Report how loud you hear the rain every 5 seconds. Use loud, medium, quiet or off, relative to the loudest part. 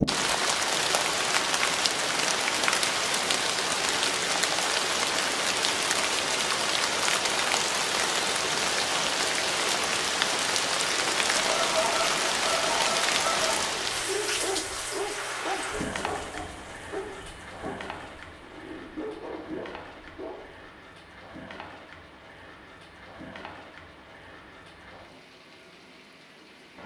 loud, loud, loud, quiet, quiet, quiet.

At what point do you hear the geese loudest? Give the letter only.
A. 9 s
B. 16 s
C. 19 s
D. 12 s
D.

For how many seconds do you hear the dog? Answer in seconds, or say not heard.
7 s.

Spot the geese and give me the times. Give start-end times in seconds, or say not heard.
11.3-13.7.